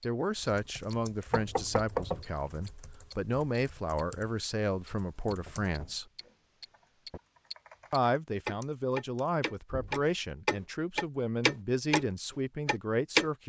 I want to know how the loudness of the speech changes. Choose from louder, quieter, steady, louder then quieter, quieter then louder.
steady.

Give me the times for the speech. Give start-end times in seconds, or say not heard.
0.0-6.0, 7.9-13.4.